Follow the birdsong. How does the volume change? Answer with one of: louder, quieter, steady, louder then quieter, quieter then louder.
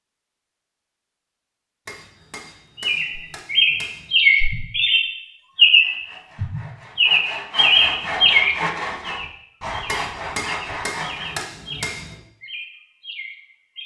quieter.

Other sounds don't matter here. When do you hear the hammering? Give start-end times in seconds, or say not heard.
1.9-4.2, 9.8-12.2.